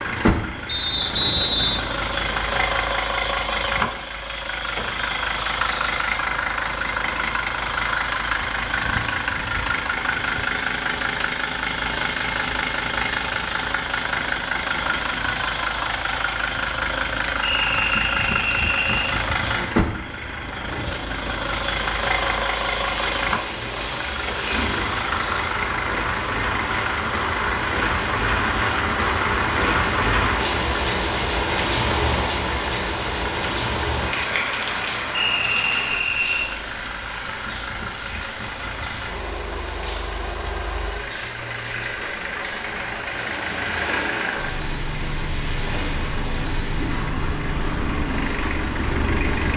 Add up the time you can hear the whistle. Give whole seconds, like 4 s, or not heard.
4 s.